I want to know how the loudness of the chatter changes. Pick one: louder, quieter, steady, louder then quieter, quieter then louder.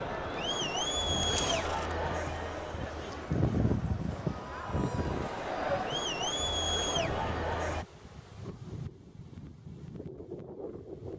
quieter then louder.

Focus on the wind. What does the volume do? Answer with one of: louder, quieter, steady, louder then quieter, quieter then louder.
louder then quieter.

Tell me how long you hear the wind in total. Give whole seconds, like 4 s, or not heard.
11 s.